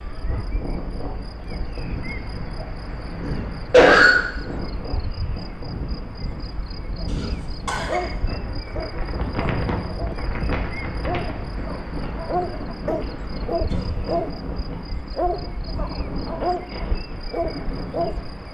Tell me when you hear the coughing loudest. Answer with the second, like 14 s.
4 s.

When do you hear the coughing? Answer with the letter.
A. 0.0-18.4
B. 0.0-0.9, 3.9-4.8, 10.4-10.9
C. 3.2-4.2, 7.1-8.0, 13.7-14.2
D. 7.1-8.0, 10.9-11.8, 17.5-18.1
C.